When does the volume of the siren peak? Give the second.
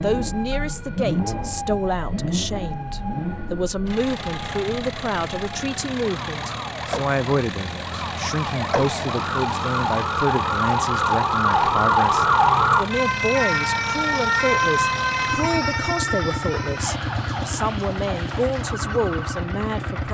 12 s.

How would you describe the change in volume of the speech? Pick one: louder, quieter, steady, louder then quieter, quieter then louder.
steady.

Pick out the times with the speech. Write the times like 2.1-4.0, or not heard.
0.0-20.0.